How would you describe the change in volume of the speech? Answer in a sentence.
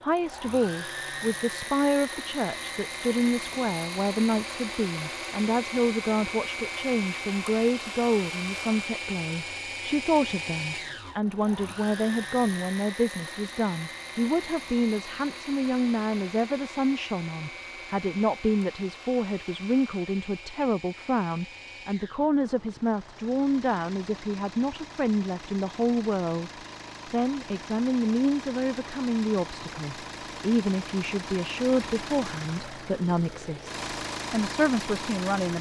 The volume of the speech stays about the same.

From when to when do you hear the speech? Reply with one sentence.
The speech can be heard from 0.0 to 35.5 s.